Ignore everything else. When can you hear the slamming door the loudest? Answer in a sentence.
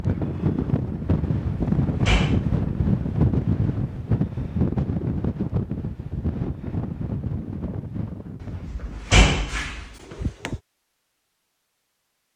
The loudest moment of the slamming door is at 9 seconds.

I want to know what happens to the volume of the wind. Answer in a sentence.
The volume of the wind goes down.